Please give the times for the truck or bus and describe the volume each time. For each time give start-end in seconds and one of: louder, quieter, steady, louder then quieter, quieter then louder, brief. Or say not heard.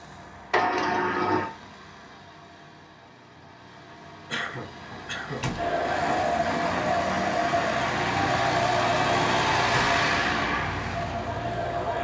0.0-11.9 louder.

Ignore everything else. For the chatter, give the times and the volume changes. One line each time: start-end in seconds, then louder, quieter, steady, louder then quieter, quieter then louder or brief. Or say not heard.
5.5-11.9 quieter.